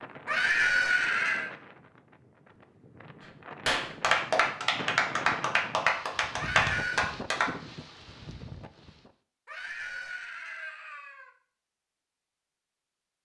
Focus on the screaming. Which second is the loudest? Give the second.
1 s.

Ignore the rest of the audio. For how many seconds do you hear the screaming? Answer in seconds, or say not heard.
4 s.